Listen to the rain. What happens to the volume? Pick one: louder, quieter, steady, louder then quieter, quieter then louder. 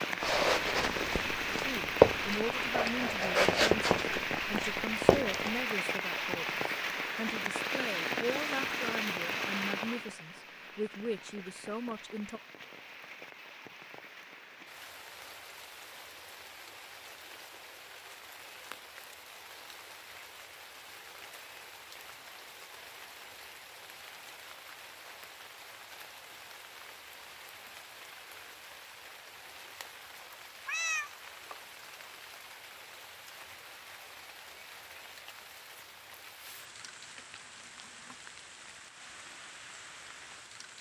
quieter.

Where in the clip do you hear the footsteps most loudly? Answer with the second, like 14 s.
2 s.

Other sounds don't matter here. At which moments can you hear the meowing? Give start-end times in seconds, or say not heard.
30.2-31.6.